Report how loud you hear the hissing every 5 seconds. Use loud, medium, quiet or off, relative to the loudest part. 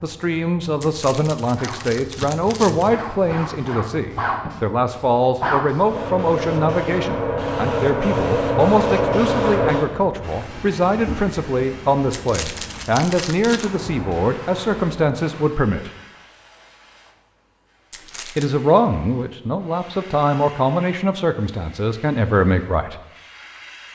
medium, loud, quiet, quiet, quiet.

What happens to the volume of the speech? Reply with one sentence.
The loudness of the speech stays about the same.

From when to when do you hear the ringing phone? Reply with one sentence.
The ringing phone can't be heard in this clip.